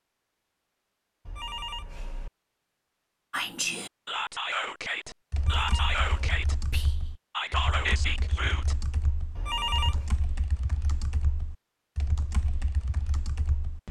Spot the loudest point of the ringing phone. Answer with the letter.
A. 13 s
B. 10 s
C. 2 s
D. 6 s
B.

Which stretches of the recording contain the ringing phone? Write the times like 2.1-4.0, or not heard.
1.2-2.3, 5.3-6.4, 9.3-10.1.